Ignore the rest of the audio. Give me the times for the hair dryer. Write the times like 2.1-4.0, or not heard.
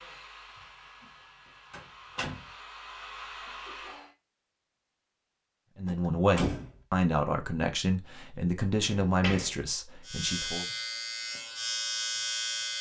0.0-4.2.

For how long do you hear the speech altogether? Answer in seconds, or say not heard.
5 s.